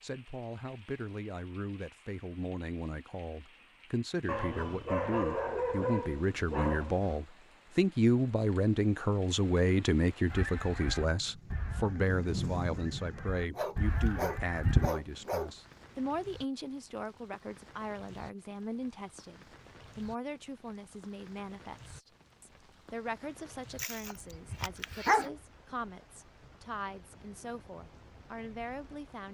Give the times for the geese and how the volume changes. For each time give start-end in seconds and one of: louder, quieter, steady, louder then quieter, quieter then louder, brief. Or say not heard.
10.2-14.9 quieter then louder.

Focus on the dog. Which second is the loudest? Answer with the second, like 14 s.
25 s.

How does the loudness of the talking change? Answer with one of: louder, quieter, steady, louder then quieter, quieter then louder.
louder then quieter.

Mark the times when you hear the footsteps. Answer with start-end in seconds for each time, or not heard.
not heard.